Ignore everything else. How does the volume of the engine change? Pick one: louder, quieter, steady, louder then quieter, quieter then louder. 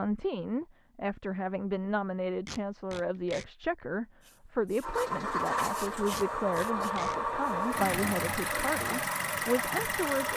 steady.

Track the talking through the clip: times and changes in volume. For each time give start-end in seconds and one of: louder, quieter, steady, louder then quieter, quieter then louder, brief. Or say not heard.
0.0-10.3 steady.